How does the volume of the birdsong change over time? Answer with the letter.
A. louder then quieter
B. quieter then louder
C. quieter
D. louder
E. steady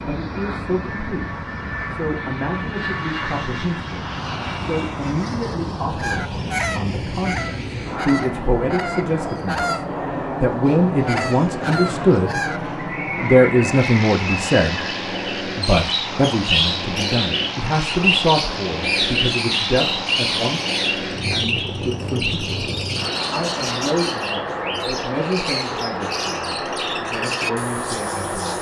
A.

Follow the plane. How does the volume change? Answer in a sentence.
The volume of the plane stays about the same.